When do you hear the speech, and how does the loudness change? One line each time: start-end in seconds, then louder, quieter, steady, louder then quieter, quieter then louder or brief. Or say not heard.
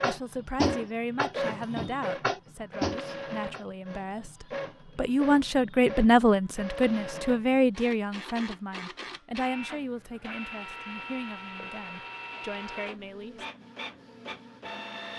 0.0-13.4 louder then quieter.